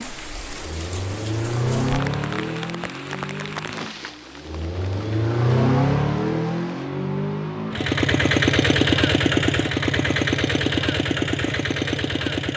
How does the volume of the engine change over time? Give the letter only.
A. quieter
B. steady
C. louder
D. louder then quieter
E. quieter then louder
E.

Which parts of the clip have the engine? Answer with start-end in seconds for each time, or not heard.
0.0-12.5.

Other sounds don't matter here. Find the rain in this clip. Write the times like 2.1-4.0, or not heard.
0.0-6.9.